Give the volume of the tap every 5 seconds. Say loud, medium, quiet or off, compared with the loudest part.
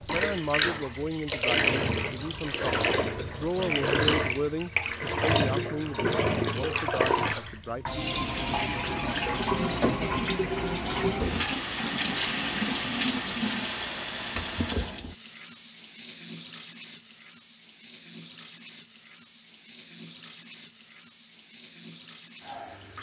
loud, loud, loud, quiet, quiet.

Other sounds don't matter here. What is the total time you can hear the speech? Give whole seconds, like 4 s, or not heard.
8 s.